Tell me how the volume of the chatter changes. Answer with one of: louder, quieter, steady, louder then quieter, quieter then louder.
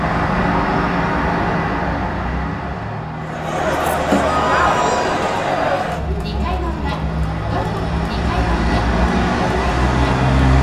quieter.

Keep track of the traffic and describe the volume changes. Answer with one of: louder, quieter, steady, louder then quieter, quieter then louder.
quieter then louder.